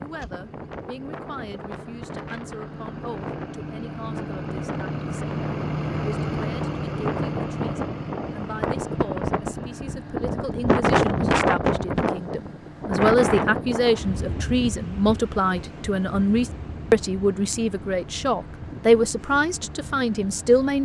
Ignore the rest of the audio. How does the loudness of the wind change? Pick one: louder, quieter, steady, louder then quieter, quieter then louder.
louder then quieter.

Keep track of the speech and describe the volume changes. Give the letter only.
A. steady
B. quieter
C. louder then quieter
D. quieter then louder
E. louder
E.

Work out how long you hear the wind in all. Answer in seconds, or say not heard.
21 s.